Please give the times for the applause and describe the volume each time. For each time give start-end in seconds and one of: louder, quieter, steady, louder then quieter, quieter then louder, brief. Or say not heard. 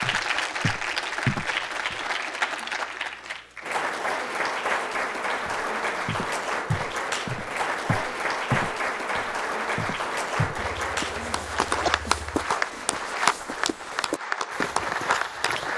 0.0-15.7 steady.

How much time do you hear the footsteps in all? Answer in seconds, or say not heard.
12 s.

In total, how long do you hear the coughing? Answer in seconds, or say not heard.
2 s.